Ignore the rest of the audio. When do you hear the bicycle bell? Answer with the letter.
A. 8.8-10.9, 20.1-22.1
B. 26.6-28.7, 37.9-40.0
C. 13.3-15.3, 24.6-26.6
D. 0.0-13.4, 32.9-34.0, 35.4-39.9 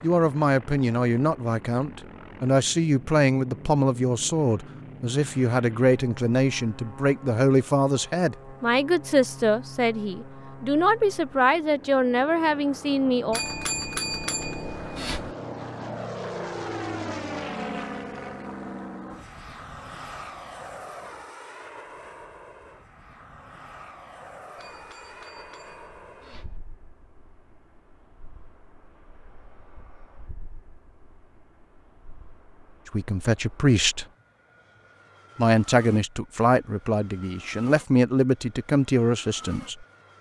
C.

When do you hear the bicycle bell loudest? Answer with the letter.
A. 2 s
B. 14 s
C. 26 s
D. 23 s
B.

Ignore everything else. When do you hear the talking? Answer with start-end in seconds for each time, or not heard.
0.0-13.4, 32.9-34.0, 35.4-39.9.